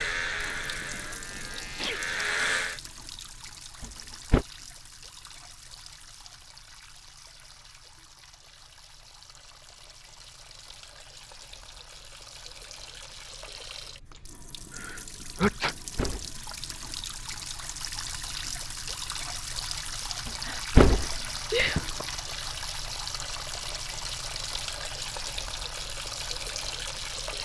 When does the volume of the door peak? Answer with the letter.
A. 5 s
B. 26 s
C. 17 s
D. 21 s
D.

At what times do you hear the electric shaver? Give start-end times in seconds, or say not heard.
0.0-2.8.